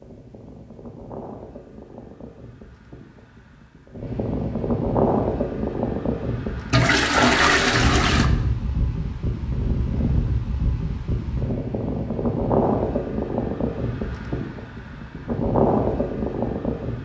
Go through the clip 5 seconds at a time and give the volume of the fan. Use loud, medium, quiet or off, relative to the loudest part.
medium, loud, loud, loud.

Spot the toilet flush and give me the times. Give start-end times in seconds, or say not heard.
6.7-8.3.